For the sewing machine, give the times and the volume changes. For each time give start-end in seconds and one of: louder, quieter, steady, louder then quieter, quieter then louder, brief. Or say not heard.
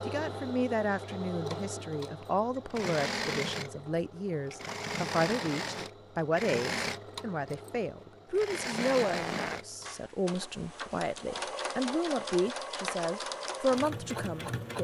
0.0-14.7 steady.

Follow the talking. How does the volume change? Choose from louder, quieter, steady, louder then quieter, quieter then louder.
steady.